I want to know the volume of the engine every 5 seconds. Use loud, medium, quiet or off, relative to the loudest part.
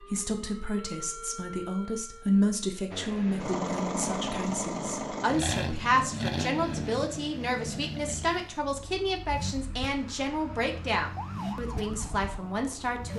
loud, loud, medium.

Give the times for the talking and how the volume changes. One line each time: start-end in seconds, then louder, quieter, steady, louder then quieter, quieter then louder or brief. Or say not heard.
0.0-13.1 steady.